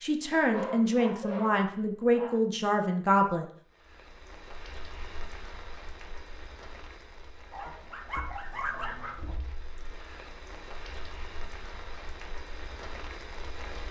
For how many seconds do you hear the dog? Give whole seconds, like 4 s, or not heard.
4 s.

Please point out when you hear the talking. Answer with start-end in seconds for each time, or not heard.
0.0-3.5.